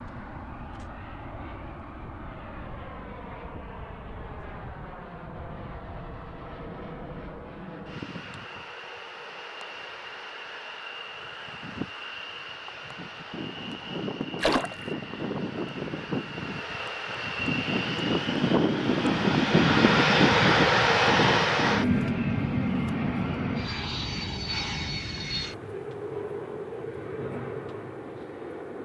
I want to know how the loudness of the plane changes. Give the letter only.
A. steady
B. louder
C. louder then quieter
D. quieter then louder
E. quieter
C.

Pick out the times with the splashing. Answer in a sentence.
The splashing can be heard from 14.4 to 14.8 s.